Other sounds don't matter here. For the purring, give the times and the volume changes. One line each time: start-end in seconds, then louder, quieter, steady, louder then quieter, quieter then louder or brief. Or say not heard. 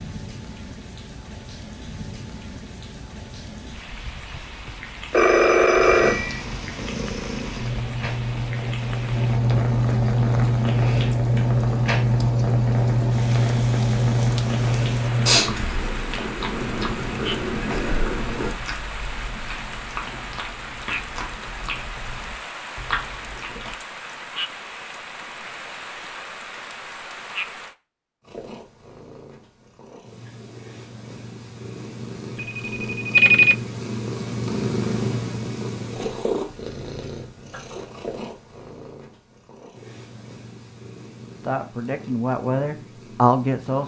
5.8-18.6 louder then quieter
28.2-43.8 louder then quieter.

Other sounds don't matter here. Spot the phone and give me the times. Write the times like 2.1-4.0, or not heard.
5.1-6.4, 32.4-33.5.